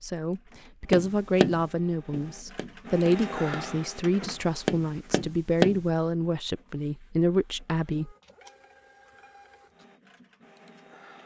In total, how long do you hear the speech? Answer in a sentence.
The speech can be heard for 8 seconds in total.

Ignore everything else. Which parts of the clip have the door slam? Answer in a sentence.
You can't hear the door slam here.